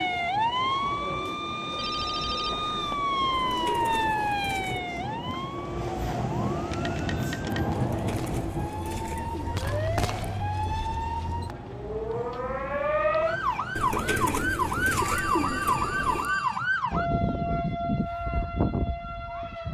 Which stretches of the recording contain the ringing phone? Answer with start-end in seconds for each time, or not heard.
1.8-3.0, 6.7-7.7, 14.9-16.6.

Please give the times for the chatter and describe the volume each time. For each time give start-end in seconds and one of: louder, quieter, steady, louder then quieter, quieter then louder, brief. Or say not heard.
not heard.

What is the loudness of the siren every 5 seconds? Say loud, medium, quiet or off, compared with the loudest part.
loud, medium, loud, loud.